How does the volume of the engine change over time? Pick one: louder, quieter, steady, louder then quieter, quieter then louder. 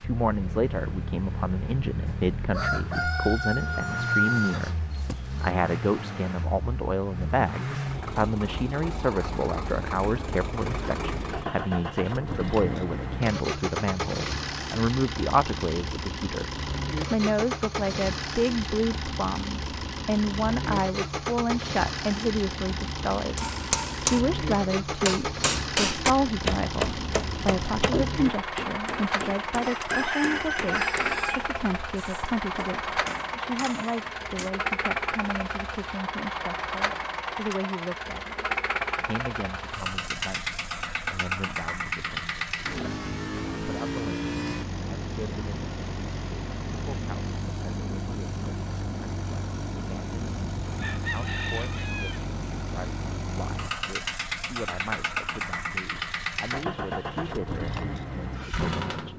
steady.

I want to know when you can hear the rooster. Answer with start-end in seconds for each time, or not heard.
2.0-5.5, 29.6-31.4, 50.6-52.2.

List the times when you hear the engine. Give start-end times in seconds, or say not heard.
0.0-59.1.